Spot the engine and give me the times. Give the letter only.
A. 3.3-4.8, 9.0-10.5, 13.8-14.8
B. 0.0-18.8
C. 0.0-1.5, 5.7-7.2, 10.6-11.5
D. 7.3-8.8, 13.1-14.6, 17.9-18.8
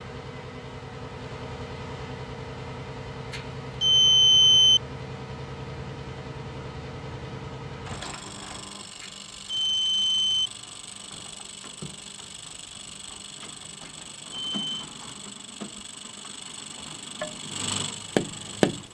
B.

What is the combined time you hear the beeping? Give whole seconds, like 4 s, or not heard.
4 s.